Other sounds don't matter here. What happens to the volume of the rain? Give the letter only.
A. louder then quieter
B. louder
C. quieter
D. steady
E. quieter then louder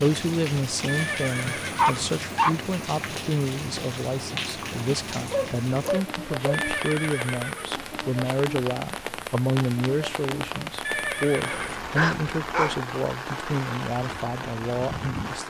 D.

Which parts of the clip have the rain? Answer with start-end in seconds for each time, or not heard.
0.0-15.4.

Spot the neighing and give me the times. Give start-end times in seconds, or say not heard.
0.8-2.1, 6.5-7.8, 10.8-11.8.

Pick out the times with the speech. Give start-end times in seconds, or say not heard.
0.0-15.4.